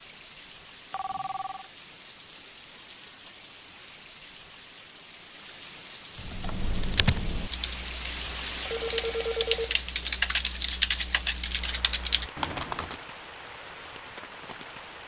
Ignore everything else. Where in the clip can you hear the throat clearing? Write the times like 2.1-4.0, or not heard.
not heard.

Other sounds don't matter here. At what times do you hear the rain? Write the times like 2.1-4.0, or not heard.
0.0-15.0.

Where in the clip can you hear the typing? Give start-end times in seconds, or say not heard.
6.2-12.9.